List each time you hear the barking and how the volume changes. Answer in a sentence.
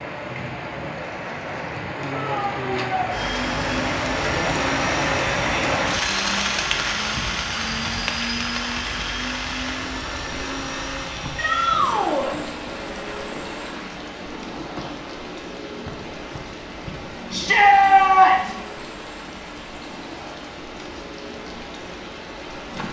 You can't hear the barking here.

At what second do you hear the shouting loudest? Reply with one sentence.
The loudest moment of the shouting is at 18 seconds.